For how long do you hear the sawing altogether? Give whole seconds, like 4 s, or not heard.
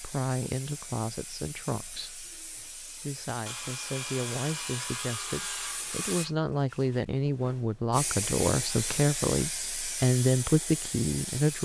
3 s.